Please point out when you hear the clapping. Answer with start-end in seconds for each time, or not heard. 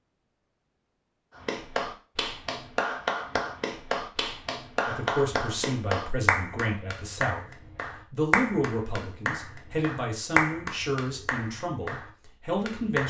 1.4-13.0.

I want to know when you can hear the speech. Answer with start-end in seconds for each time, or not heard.
4.8-13.0.